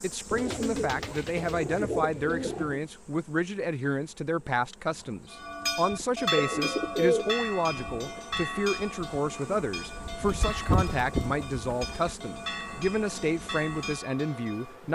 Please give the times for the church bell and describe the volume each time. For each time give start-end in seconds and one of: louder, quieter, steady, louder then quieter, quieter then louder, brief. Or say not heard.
5.3-14.8 quieter.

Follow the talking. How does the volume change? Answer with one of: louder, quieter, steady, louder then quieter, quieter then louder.
steady.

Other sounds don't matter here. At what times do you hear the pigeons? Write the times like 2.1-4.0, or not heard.
0.3-2.8, 6.3-8.2, 10.2-12.1.